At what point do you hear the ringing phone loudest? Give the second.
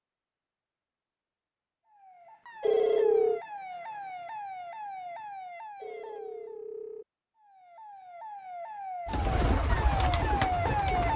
3 s.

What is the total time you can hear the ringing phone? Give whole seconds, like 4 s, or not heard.
2 s.